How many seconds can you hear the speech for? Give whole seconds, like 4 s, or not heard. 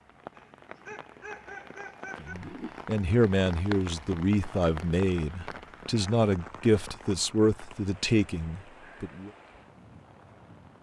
7 s.